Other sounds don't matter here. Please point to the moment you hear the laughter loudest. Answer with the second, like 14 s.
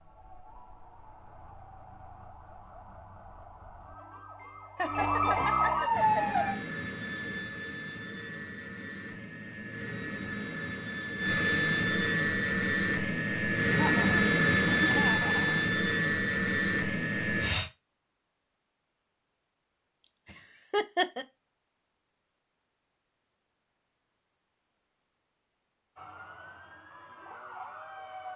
21 s.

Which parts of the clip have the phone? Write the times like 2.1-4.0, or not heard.
not heard.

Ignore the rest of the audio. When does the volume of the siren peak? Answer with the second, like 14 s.
6 s.